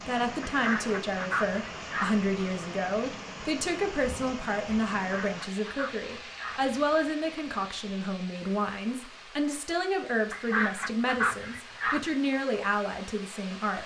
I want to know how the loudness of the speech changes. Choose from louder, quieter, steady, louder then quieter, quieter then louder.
steady.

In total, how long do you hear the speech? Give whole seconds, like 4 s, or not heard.
14 s.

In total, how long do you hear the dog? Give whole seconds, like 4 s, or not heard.
not heard.